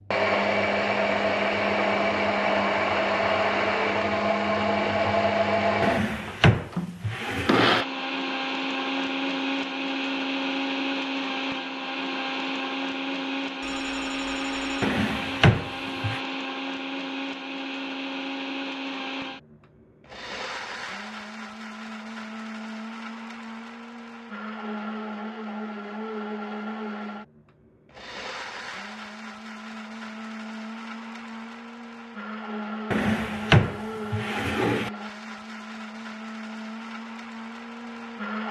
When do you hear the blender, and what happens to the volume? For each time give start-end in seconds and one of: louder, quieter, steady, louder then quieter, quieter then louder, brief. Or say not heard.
0.1-38.4 quieter.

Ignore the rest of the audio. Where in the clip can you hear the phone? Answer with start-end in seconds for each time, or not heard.
13.6-14.8.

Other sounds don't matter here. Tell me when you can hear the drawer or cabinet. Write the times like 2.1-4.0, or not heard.
5.8-7.8, 14.8-16.2, 32.9-34.9.